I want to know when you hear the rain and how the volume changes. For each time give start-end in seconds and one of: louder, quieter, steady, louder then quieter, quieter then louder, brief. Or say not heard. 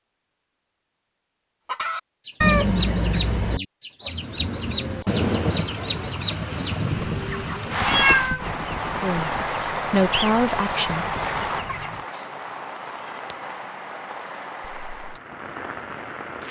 4.0-16.4 quieter.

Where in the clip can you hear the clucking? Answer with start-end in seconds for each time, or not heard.
1.6-12.1.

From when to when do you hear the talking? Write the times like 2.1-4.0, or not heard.
9.0-11.4.